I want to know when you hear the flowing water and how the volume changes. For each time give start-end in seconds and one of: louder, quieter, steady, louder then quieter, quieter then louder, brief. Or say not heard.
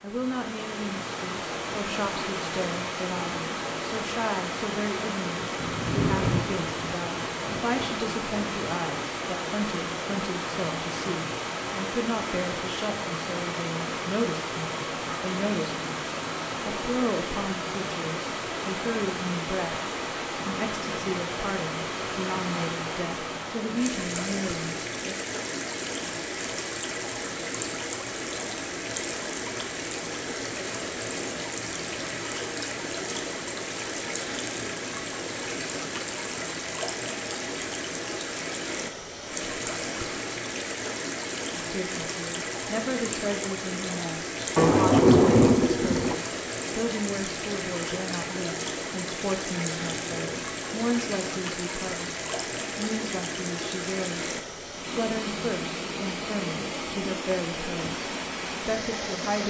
0.0-59.4 steady.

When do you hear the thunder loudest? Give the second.
45 s.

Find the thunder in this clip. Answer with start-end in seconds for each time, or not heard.
5.6-8.7, 44.5-46.1.